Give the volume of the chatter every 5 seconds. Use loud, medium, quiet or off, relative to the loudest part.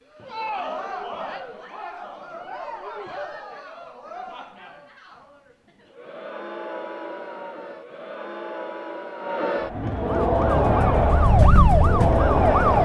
quiet, medium, loud.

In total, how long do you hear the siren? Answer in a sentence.
You can hear the siren for 3 seconds altogether.